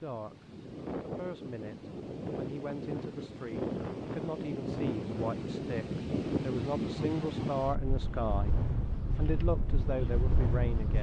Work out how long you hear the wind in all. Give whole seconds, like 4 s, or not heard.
11 s.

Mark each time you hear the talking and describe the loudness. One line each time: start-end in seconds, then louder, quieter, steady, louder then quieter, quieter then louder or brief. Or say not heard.
0.0-8.6 louder
9.2-10.9 brief.